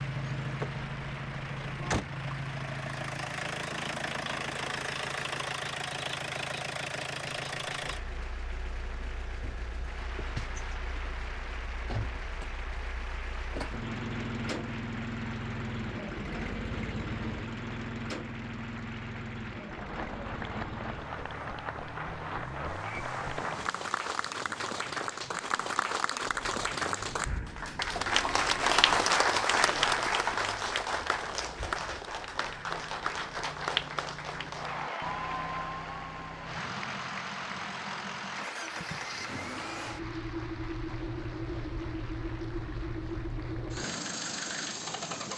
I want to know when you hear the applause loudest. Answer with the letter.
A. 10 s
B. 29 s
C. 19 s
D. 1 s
B.